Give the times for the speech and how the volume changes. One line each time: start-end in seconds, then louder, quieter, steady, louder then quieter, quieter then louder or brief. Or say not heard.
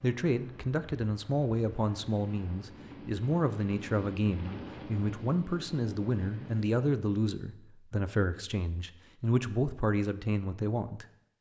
0.0-11.3 steady.